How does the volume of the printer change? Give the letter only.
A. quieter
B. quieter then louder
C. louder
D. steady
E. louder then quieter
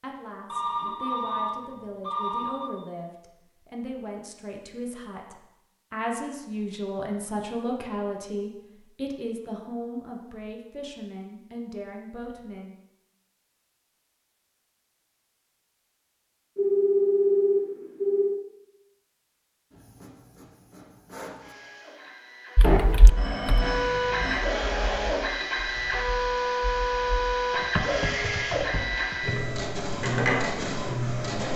C.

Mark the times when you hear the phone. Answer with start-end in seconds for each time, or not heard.
0.5-2.7, 16.6-18.4, 22.6-24.4.